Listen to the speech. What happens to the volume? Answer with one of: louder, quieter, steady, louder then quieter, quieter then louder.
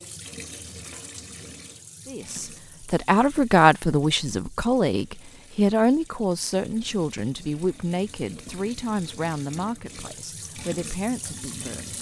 quieter.